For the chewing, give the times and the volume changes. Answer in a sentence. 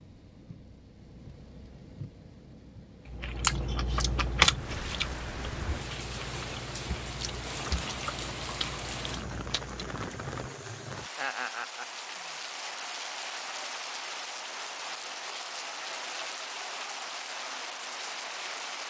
The chewing can be heard from 3.0 to 10.0 s, getting quieter.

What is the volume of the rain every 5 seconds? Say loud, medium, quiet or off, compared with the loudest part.
medium, loud, loud, loud.